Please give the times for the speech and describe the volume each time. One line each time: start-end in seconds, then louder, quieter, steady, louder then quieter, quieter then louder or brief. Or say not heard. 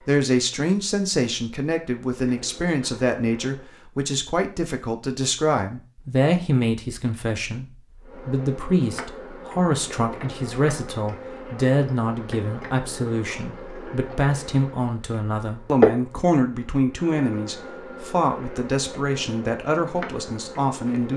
0.1-21.1 steady.